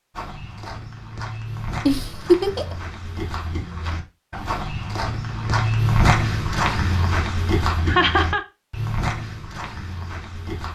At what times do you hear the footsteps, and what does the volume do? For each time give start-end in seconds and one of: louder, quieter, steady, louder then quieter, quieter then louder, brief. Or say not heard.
0.1-10.7 louder then quieter.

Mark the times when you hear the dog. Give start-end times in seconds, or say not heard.
not heard.